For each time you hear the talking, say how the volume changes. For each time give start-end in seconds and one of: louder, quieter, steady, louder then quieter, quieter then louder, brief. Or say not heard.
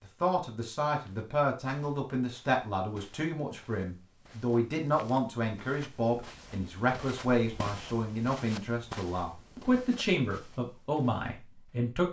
0.0-12.0 steady.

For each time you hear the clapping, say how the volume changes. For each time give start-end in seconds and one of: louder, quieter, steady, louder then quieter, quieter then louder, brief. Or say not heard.
not heard.